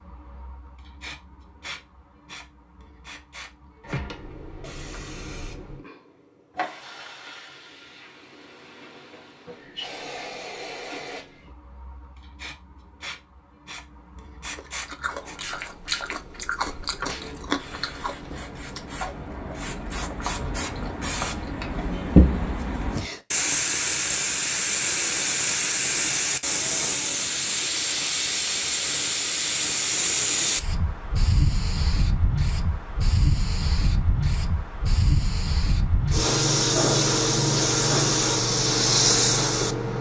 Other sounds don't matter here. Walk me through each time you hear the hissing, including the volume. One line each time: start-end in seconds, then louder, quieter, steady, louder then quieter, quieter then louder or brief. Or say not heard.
0.0-39.9 louder.